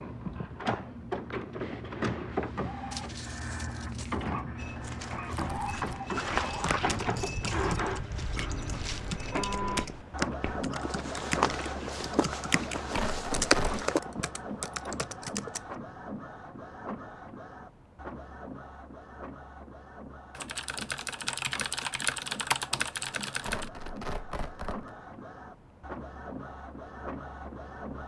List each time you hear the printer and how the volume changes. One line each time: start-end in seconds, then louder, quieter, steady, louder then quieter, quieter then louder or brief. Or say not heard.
0.0-28.0 quieter.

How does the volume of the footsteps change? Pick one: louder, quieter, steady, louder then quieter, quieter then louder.
quieter then louder.